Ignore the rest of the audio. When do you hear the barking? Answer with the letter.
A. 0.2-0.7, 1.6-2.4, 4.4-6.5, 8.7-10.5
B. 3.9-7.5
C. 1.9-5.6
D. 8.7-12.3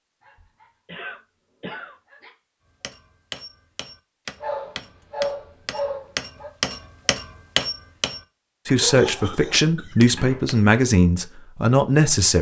A.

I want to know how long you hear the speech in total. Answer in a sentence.
The speech can be heard for 4 seconds in total.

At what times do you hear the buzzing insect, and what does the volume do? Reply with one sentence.
You can't hear the buzzing insect here.